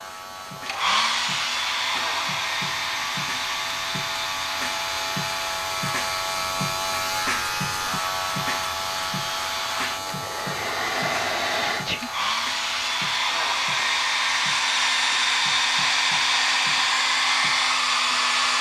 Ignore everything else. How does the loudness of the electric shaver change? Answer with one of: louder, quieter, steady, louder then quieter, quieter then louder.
louder then quieter.